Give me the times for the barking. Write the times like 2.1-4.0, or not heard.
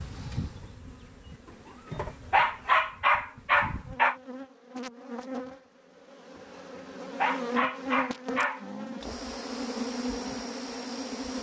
2.3-4.2, 6.8-8.7.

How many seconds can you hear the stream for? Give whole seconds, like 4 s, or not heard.
not heard.